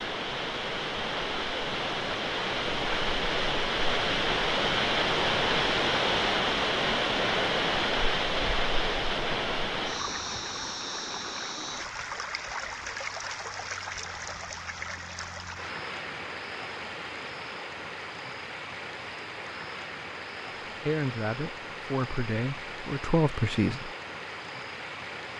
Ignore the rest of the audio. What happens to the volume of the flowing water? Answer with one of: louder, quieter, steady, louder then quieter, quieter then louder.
quieter.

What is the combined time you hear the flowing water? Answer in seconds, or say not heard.
25 s.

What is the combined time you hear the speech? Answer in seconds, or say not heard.
3 s.